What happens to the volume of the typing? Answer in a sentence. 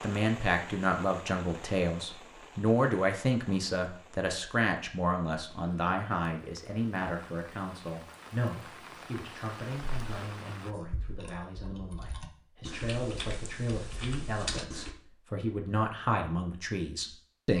The volume of the typing goes up.